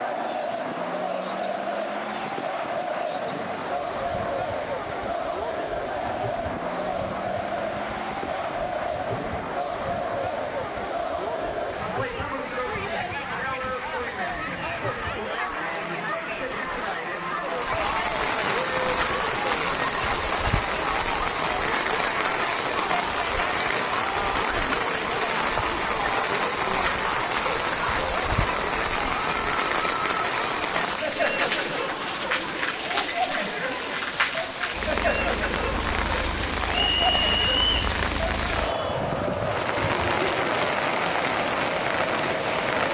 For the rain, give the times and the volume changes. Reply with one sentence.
You can hear the rain from 0.0 to 42.8 s, getting louder.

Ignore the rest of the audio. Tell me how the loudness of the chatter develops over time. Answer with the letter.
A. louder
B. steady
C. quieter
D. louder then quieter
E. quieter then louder
B.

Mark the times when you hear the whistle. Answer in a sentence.
You can hear the whistle from 36.7 to 37.8 s.